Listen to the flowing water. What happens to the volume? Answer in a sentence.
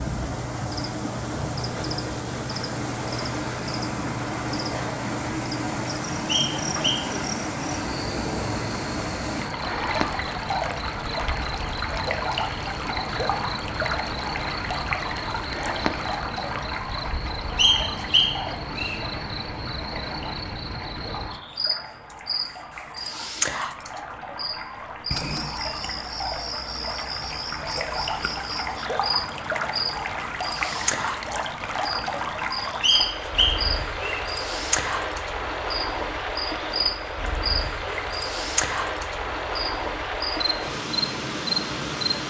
The volume of the flowing water goes down, then up.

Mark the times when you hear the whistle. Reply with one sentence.
The whistle can be heard from 6.5 to 7.0 s, from 17.6 to 19.0 s and from 32.8 to 34.2 s.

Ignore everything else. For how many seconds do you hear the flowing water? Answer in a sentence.
You can hear the flowing water for 42 seconds altogether.